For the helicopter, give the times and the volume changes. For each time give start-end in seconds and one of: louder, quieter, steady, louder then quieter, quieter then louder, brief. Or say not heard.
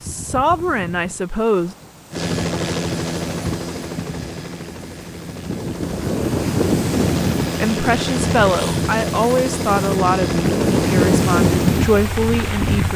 2.1-12.9 quieter then louder.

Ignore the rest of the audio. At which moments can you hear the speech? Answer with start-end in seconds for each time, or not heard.
0.0-1.8, 7.6-12.9.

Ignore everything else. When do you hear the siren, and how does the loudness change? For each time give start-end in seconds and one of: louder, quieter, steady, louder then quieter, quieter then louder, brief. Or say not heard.
not heard.